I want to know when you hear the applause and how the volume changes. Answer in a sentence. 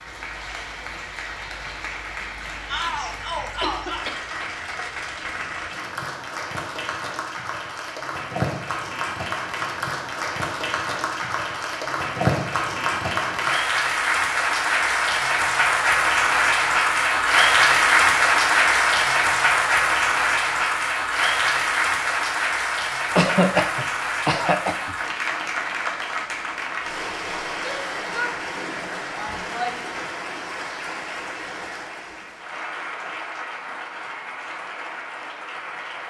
The applause can be heard from 0.0 to 36.0 s, getting louder then quieter.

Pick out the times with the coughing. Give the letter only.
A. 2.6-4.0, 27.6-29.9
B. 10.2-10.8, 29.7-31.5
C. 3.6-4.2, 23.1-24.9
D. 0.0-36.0
C.